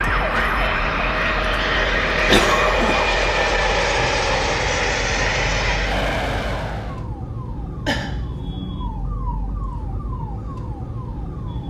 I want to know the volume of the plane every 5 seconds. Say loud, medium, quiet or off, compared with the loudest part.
loud, loud, off.